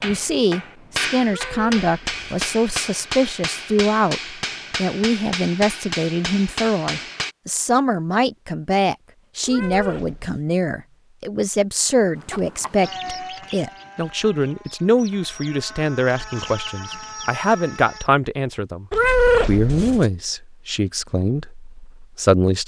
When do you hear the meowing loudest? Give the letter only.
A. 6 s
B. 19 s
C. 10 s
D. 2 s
B.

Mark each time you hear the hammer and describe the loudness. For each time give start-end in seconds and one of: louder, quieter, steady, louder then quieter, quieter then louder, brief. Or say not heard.
0.0-7.3 steady.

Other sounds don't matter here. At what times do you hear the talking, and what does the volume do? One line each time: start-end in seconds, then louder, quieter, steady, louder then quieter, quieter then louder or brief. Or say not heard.
0.0-22.6 steady.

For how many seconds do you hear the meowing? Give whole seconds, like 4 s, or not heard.
3 s.